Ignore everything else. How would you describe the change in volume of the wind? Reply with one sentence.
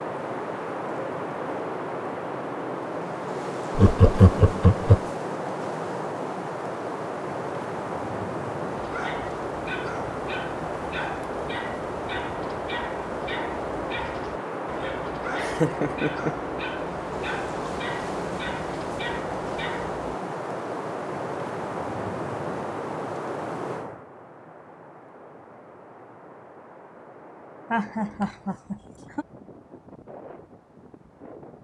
The loudness of the wind goes down.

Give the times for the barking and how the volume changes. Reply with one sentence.
The barking can be heard from 8.8 to 19.9 s, at a steady volume.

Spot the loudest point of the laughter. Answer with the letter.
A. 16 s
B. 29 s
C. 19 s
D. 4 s
D.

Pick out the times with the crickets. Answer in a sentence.
You can't hear the crickets here.